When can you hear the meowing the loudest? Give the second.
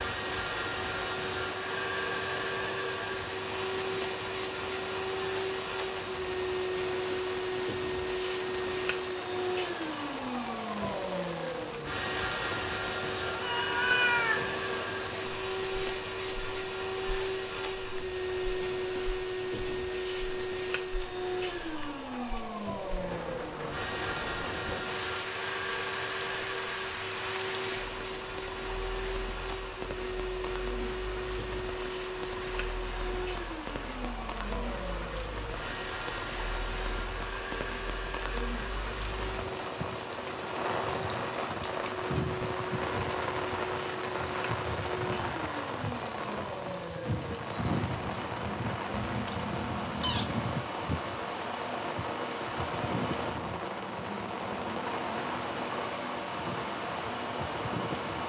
14 s.